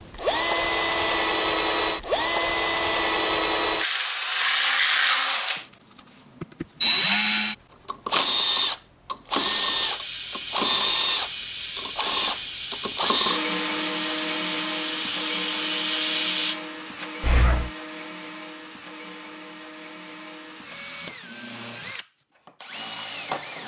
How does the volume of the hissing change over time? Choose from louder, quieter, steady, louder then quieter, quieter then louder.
louder.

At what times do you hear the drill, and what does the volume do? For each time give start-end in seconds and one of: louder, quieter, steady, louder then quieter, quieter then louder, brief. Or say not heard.
0.0-23.6 quieter.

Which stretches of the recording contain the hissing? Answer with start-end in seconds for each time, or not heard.
9.8-17.7.